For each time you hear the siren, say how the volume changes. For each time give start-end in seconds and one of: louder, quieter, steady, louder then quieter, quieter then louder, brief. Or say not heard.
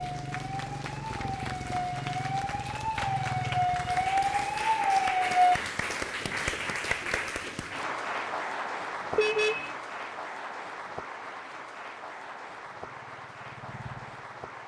0.1-5.6 louder.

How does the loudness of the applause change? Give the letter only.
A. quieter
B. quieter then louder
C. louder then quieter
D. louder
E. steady
C.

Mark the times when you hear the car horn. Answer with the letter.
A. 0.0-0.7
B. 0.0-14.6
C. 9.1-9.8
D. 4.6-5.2
C.